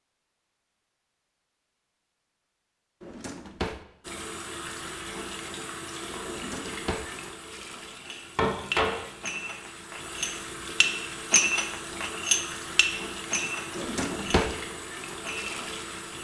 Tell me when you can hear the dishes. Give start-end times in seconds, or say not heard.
8.0-14.4, 15.2-16.1.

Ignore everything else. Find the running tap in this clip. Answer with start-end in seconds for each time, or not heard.
4.0-16.1.